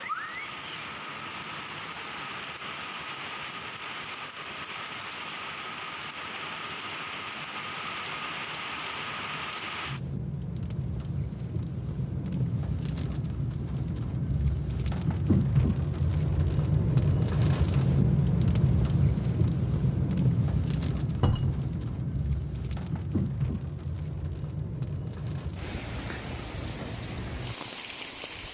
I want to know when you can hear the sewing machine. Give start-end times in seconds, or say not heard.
not heard.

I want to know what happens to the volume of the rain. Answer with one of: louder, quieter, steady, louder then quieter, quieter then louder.
louder then quieter.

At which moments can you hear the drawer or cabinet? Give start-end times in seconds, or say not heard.
21.2-21.6.